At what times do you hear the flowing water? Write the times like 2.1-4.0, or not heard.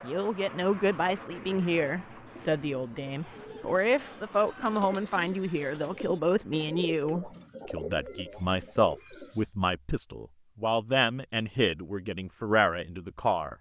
not heard.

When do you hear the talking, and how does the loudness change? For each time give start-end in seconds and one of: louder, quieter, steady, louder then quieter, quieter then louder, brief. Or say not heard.
0.0-13.5 steady.